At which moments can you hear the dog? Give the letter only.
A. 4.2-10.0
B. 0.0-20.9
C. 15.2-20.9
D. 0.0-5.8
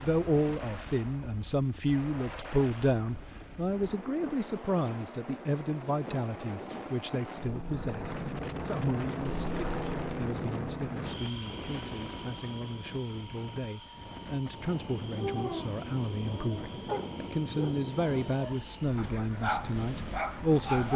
C.